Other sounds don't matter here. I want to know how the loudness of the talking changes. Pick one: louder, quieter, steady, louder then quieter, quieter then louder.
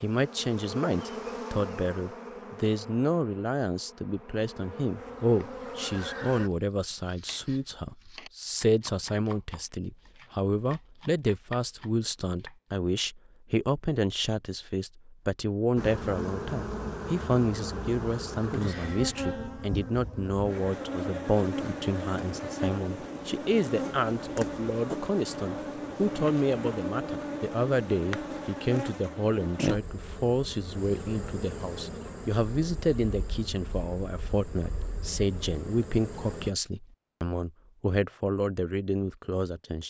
steady.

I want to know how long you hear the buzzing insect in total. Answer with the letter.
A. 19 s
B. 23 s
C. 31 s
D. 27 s
D.